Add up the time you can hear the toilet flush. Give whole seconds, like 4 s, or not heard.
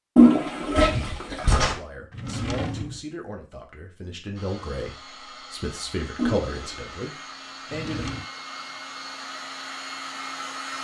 2 s.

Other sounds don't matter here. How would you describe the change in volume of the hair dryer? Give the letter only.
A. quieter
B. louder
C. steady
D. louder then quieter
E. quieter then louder
B.